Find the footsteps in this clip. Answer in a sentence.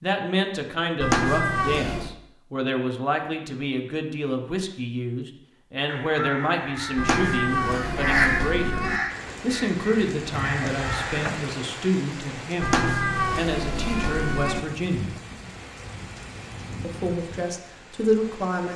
You can't hear the footsteps here.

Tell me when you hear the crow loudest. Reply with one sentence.
The volume of the crow peaks at 8 seconds.